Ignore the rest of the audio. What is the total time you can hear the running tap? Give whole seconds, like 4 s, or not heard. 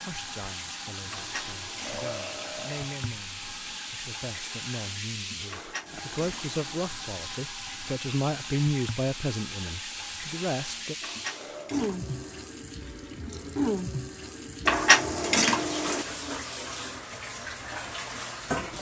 19 s.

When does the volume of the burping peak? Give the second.
2 s.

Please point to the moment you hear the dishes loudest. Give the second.
15 s.